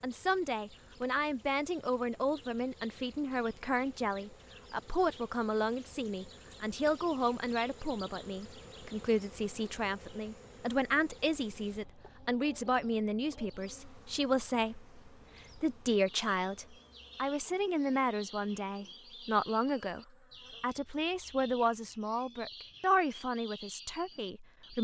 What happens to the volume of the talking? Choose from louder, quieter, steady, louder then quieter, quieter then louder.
steady.